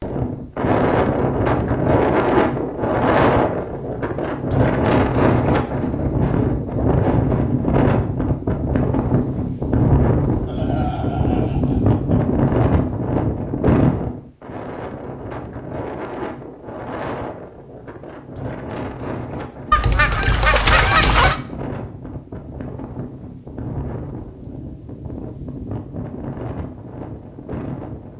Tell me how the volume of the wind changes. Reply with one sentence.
The volume of the wind goes down.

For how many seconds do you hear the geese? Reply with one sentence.
You can hear the geese for 2 seconds altogether.